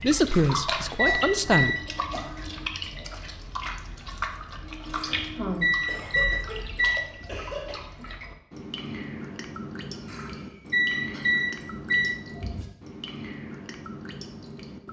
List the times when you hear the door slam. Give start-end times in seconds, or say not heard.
not heard.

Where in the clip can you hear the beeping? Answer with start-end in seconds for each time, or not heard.
0.3-2.2, 5.0-7.4, 10.1-12.7.